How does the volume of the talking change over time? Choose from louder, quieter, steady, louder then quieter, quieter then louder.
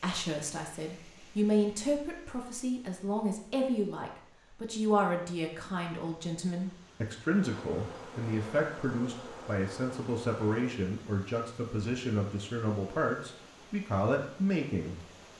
steady.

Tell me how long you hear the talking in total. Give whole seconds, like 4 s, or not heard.
15 s.